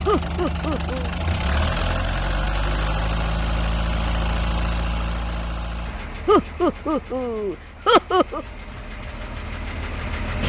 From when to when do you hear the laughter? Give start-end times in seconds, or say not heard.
0.1-1.1, 6.2-8.4.